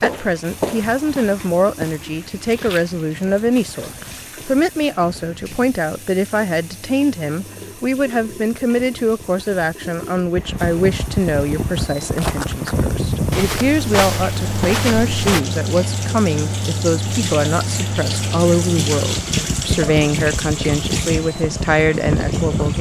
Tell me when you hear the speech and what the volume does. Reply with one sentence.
The speech can be heard from 0.0 to 22.7 s, at a steady volume.